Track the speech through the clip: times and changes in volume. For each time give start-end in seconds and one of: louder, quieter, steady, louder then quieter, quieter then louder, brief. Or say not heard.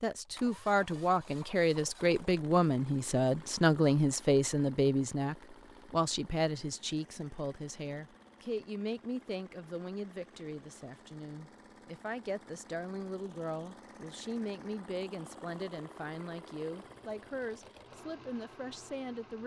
0.0-19.4 quieter.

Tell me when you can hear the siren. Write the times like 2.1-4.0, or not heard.
not heard.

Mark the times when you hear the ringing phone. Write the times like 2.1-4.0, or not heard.
not heard.